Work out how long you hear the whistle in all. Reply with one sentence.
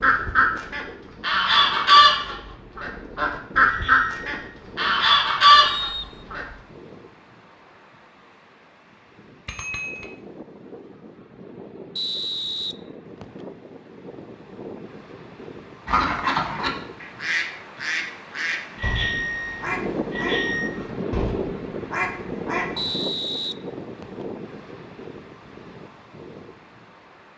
The whistle can be heard for 4 seconds in total.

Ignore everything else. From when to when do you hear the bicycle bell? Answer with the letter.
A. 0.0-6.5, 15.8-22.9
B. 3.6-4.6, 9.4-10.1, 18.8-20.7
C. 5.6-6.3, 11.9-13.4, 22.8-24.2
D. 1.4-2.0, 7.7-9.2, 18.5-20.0
B.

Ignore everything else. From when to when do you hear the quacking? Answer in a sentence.
You can hear the quacking from 0.0 to 6.5 s and from 15.8 to 22.9 s.